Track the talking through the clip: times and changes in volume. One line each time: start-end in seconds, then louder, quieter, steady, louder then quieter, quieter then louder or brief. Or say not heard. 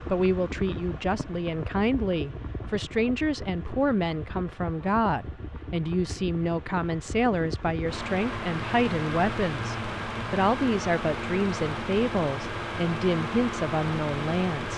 0.1-14.7 steady.